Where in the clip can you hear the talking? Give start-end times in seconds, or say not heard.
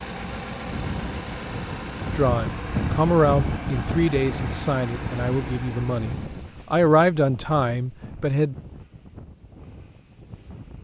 2.1-8.6.